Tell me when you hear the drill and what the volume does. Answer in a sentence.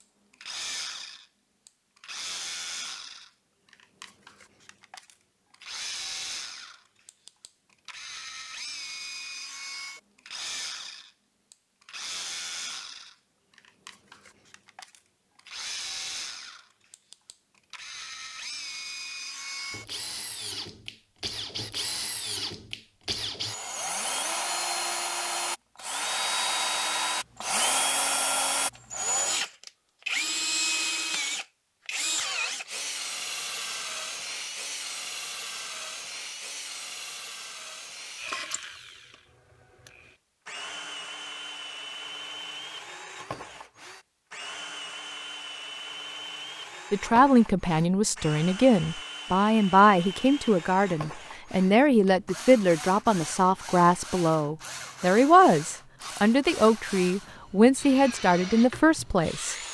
The drill can be heard from 0.0 to 59.6 s, getting louder then quieter.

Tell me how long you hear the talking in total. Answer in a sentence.
You can hear the talking for 13 seconds altogether.